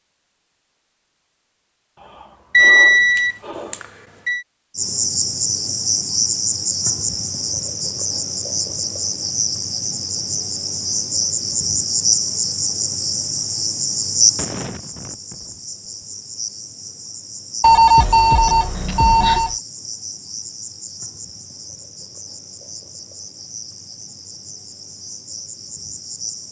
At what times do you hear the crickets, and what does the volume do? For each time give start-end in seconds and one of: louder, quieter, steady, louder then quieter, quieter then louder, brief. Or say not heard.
4.8-26.4 quieter.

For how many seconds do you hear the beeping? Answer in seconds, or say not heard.
4 s.